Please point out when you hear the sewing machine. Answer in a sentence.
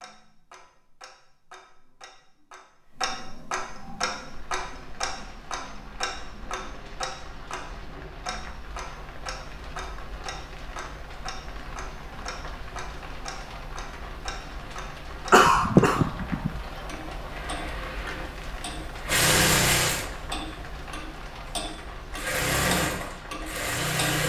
The sewing machine can be heard from 15.9 to 20.1 s and from 22.1 to 24.2 s.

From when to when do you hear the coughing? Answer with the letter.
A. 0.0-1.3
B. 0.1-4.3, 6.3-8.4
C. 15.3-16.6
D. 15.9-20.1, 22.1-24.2
C.